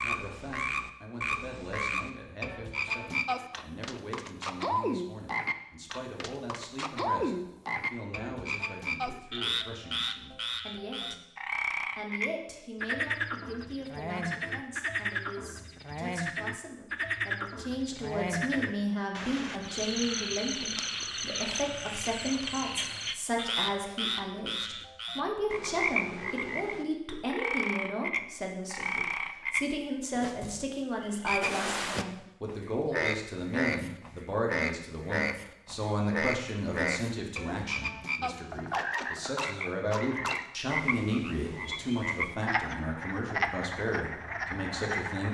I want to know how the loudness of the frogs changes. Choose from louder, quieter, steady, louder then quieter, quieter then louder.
steady.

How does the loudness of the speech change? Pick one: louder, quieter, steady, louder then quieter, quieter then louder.
louder.